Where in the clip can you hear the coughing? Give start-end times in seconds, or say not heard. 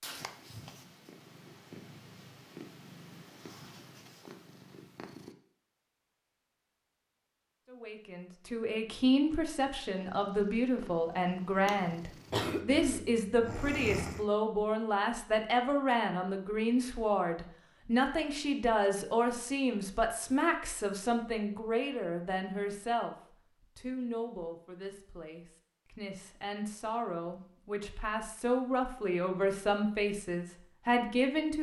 12.3-14.2.